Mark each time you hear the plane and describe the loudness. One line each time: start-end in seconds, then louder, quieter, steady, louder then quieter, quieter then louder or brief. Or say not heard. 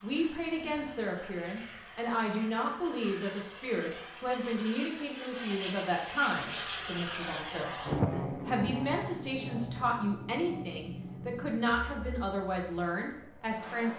0.0-13.9 louder then quieter.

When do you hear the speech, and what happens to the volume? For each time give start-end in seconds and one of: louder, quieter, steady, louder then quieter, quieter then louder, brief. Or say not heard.
0.0-13.9 steady.